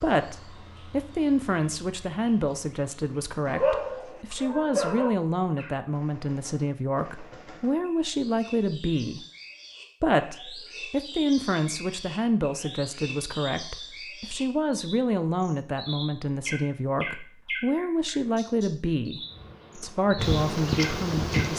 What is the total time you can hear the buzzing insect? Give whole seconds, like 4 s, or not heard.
2 s.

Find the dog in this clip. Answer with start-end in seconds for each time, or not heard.
3.5-5.2.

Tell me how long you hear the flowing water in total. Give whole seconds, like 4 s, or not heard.
not heard.